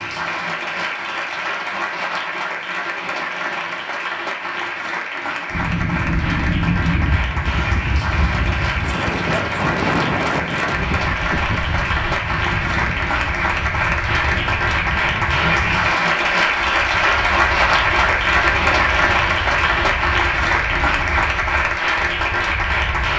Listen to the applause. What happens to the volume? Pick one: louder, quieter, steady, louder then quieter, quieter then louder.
louder.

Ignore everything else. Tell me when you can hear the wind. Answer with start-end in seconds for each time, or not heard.
5.5-23.1.